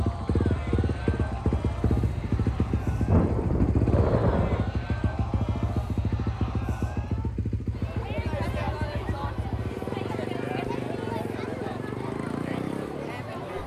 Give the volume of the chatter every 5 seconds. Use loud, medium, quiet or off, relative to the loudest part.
medium, loud, loud.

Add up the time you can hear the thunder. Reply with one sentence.
The thunder can be heard for 3 seconds in total.